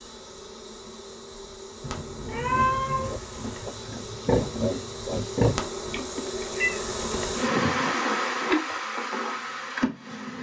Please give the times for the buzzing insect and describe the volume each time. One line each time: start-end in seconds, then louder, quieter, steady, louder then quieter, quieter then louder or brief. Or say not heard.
0.0-10.3 louder.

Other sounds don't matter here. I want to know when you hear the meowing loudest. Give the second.
3 s.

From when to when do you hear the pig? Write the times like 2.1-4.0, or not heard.
2.5-5.7.